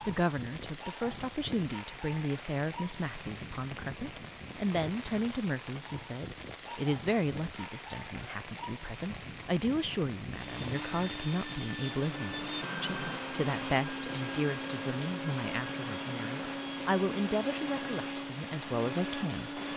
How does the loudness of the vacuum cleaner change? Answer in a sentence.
The loudness of the vacuum cleaner stays about the same.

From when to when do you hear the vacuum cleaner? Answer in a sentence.
You can hear the vacuum cleaner from 10.3 to 19.7 s.